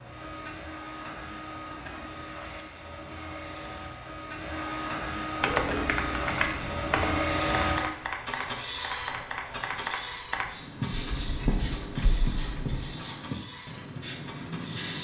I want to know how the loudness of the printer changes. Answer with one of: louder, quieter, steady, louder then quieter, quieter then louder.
louder then quieter.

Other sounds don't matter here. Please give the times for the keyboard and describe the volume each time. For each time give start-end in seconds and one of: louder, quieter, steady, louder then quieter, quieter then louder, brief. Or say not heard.
5.4-12.8 quieter.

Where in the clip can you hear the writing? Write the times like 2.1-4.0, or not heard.
10.4-14.9.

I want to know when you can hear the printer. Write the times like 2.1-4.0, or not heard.
0.0-14.9.